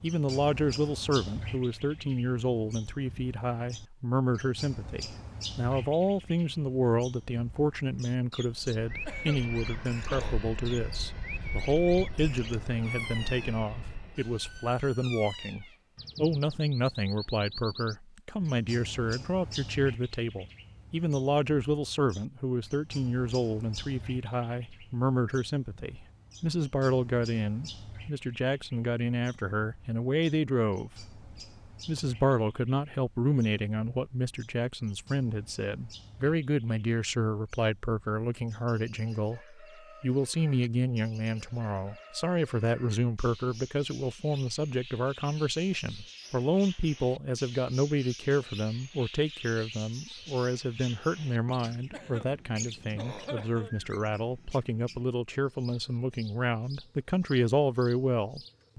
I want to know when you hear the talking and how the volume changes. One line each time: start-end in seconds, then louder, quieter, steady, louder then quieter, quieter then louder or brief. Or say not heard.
0.0-31.2 steady
31.9-58.7 steady.